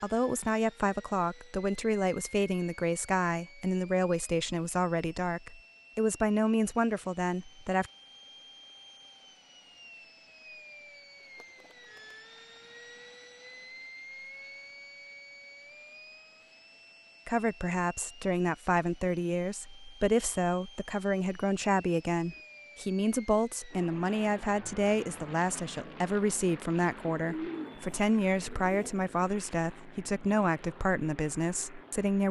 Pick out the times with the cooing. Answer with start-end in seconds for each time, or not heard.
11.2-12.2, 27.1-28.9.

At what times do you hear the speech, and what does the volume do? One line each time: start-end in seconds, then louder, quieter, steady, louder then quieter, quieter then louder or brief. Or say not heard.
0.0-7.9 steady
17.2-32.2 steady.